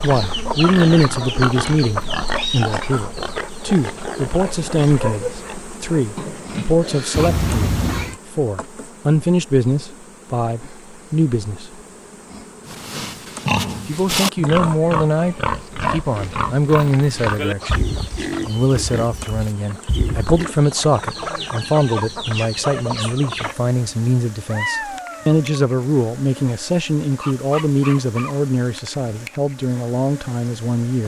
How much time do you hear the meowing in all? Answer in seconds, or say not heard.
2 s.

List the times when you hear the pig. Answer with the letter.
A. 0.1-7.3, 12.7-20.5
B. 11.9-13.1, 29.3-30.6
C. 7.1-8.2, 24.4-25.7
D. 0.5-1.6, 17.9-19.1
A.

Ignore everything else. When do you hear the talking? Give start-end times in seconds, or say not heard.
0.0-11.7, 13.8-17.9, 18.4-31.0.